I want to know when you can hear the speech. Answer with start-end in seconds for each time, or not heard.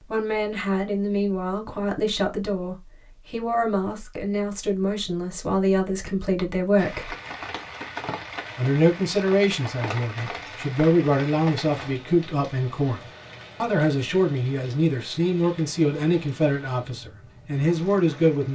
0.0-7.2, 8.6-18.5.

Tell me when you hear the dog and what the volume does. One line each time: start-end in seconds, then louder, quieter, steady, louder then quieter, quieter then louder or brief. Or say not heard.
not heard.